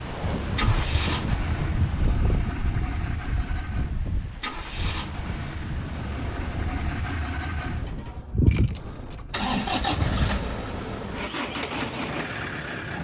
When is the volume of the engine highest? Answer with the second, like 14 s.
10 s.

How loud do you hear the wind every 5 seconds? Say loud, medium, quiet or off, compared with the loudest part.
loud, medium, medium.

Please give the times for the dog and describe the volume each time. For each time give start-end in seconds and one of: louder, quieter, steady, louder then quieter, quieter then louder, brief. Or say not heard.
not heard.